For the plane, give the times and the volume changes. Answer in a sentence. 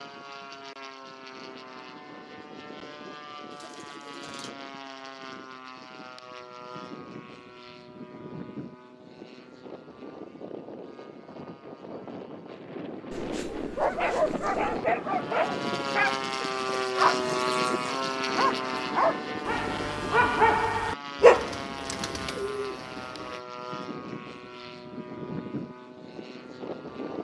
The plane can be heard from 0.0 to 27.1 s, getting louder then quieter.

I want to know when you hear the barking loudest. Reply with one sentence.
The loudest moment of the barking is at 21 seconds.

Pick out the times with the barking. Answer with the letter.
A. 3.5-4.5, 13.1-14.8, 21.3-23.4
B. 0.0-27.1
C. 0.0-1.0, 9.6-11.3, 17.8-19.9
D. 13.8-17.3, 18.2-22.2
D.